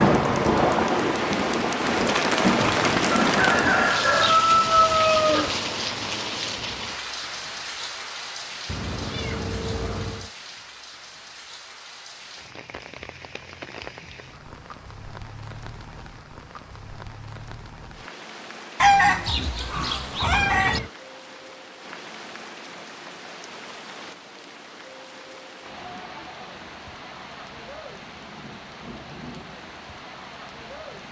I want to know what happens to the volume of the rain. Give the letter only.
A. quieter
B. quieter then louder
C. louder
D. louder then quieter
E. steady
A.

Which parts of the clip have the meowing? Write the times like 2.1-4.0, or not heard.
8.7-10.3, 20.2-20.9.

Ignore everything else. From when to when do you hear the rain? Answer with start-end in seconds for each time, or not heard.
0.0-31.0.